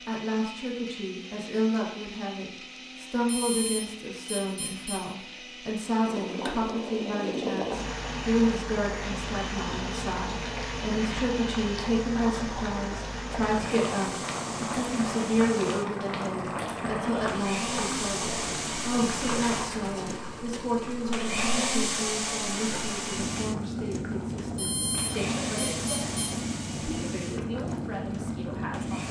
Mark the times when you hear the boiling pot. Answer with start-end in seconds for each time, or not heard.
6.0-29.0.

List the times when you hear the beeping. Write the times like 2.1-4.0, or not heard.
3.2-5.0, 24.6-26.4.